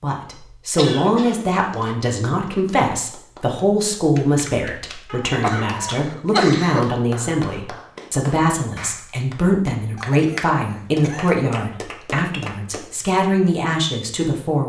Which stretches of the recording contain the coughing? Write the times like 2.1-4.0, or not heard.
0.8-1.9, 5.0-6.9, 9.9-11.4.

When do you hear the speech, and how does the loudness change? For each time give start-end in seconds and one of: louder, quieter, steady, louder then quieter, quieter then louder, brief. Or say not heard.
0.0-14.6 steady.